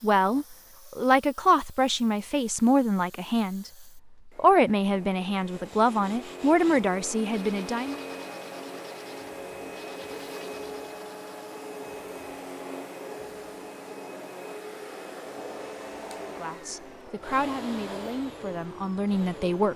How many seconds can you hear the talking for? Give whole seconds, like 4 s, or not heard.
11 s.